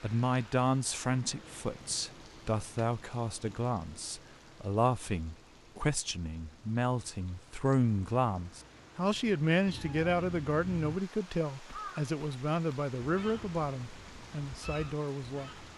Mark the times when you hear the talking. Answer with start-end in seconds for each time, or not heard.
0.0-15.7.